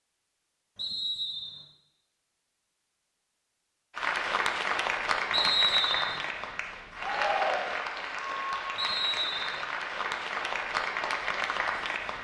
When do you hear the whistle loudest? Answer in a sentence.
The volume of the whistle peaks at 6 seconds.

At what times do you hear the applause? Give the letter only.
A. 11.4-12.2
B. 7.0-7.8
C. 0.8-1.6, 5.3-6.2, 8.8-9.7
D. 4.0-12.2
D.